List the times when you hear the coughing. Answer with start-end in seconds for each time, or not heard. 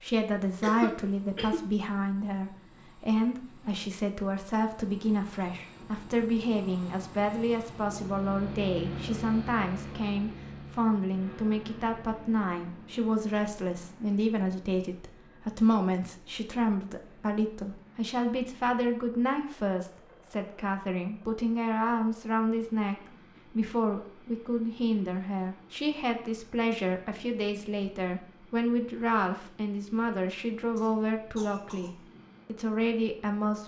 0.4-1.6, 30.8-31.9.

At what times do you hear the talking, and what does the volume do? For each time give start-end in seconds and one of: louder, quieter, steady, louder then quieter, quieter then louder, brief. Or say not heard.
0.0-33.6 steady.